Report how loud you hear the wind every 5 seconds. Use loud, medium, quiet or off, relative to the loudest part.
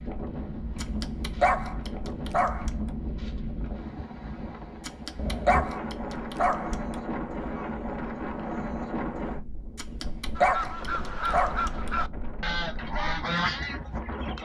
loud, loud, medium.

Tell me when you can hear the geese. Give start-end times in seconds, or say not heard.
10.3-14.3.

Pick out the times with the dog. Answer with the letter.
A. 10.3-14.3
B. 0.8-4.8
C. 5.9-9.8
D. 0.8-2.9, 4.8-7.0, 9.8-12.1
D.